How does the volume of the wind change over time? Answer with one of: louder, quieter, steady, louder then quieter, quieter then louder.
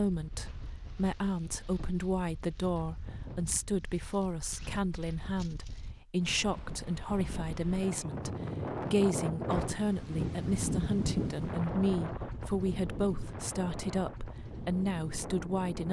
louder then quieter.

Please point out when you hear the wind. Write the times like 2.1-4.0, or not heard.
0.0-15.8.